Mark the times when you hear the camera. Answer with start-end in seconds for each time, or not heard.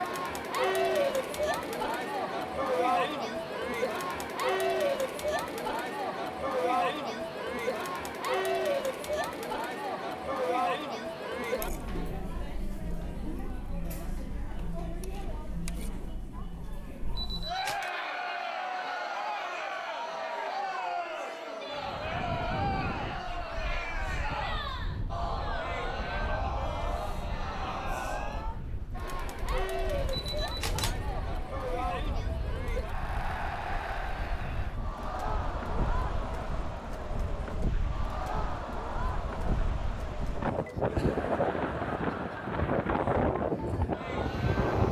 17.1-17.9, 30.1-30.9.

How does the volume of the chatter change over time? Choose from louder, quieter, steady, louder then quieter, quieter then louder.
quieter.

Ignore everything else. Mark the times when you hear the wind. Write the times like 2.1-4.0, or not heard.
21.7-44.8.